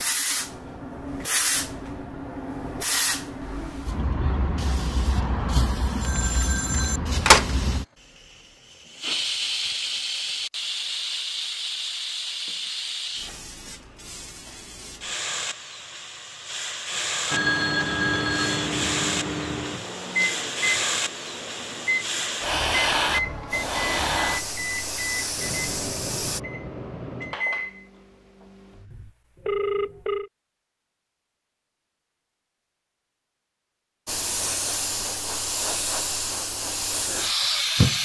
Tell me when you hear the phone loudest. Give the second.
7 s.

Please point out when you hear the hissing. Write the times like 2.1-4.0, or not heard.
0.0-26.4, 34.0-37.9.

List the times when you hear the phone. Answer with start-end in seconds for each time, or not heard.
6.0-7.5, 17.2-18.7, 28.9-30.3.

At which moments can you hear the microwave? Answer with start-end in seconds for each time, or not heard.
17.3-29.1.